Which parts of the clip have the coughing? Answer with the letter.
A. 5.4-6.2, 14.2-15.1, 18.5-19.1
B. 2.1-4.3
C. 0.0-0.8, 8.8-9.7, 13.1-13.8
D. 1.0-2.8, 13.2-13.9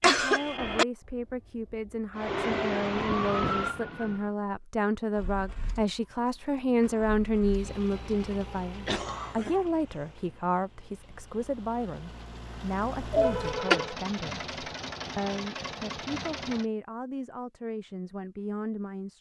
C.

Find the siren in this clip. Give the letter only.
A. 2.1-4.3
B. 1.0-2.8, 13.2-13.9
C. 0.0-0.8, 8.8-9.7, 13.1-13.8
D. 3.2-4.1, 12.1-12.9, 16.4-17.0
A.